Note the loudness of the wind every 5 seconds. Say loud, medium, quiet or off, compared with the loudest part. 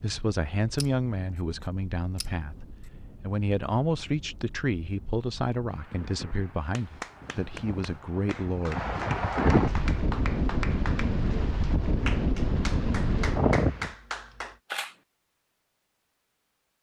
quiet, loud, loud, off.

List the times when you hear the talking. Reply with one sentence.
You can hear the talking from 0.0 to 8.8 s.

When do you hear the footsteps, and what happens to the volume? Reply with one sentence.
You can't hear the footsteps here.